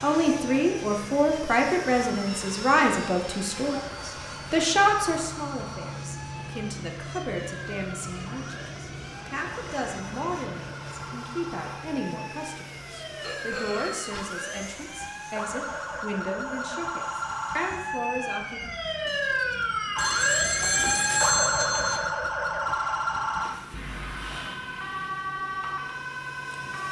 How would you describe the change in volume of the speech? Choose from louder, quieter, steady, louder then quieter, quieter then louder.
quieter.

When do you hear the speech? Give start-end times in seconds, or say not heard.
0.0-18.6.